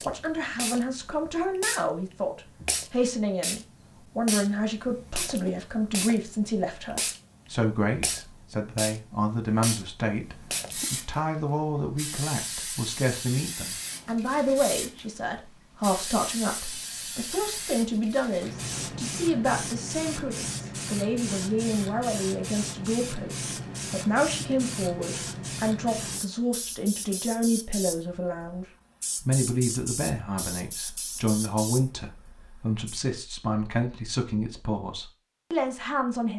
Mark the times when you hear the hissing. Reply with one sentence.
The hissing can be heard from 0.0 to 33.0 s.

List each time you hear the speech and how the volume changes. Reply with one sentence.
The speech can be heard from 0.0 to 36.3 s, at a steady volume.